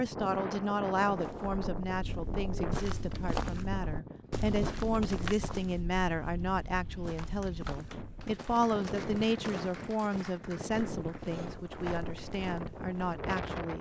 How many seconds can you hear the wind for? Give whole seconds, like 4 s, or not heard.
14 s.